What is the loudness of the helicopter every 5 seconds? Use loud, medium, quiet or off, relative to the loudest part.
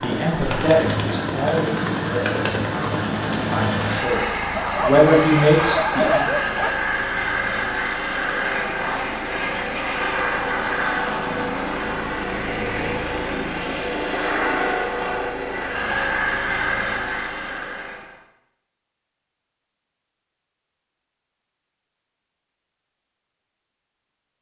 loud, loud, loud, loud, off.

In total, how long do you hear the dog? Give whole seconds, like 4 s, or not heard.
2 s.